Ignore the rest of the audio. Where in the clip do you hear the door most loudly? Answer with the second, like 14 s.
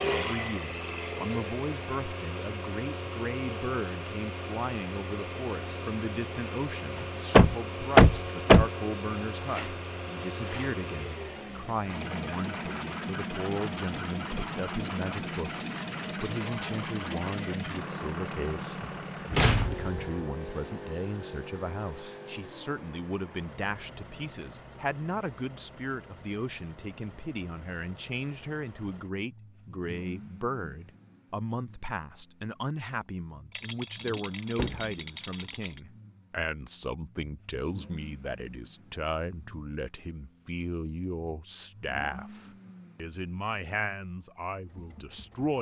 8 s.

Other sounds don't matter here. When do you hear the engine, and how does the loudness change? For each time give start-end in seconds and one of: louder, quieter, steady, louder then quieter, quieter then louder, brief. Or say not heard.
0.0-45.5 quieter.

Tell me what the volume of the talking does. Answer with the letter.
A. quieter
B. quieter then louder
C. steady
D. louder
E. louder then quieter
C.